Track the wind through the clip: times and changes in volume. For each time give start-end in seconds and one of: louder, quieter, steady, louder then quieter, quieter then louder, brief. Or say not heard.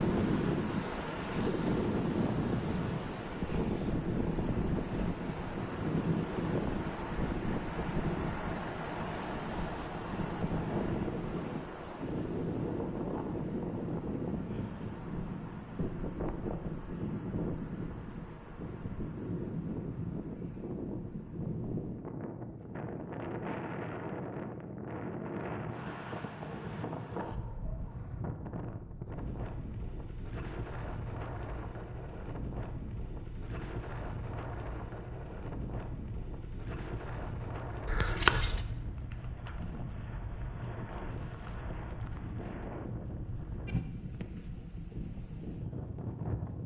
0.0-46.6 quieter.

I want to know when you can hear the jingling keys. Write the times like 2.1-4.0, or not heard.
37.9-38.6.